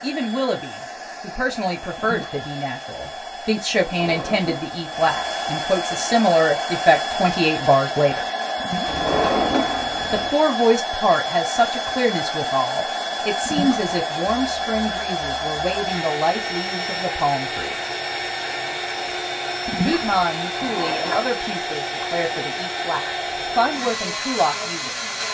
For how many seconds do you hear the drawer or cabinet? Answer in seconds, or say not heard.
4 s.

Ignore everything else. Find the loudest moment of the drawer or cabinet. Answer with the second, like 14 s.
9 s.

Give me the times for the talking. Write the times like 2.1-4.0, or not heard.
0.0-8.2, 10.1-17.8, 19.8-24.9.